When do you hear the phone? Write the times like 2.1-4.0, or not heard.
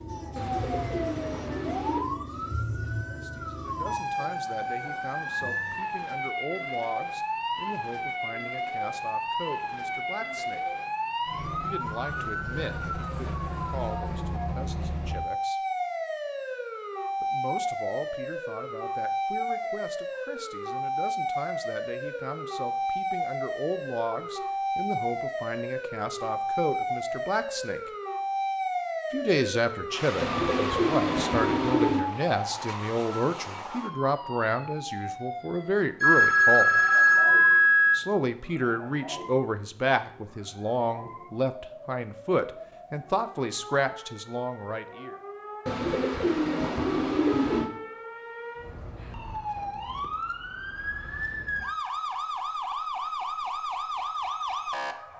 36.0-38.0.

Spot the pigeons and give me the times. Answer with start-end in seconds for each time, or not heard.
0.3-2.0, 30.2-32.1, 45.6-47.7.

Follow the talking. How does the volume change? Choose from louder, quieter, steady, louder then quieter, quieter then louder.
louder.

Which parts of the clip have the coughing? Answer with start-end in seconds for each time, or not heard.
not heard.